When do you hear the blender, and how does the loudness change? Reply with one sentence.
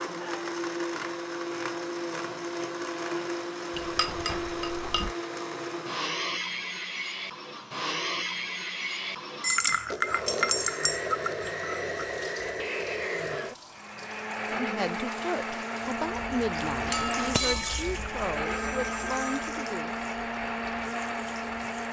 The blender can be heard from 0.0 to 21.8 s, at a steady volume.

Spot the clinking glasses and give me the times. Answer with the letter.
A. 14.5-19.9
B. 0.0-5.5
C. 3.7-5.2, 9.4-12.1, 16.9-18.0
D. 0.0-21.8
C.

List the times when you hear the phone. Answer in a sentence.
You can hear the phone from 18.4 to 19.5 s.